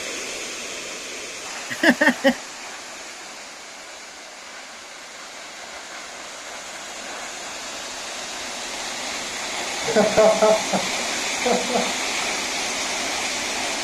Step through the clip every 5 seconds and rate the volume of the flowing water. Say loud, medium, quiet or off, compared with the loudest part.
medium, medium, loud.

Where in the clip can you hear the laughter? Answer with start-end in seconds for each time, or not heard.
1.7-2.4, 9.8-11.9.